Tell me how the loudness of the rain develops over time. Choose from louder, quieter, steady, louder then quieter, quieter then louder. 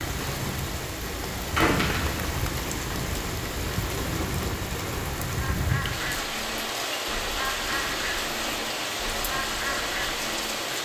steady.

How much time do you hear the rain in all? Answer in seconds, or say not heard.
11 s.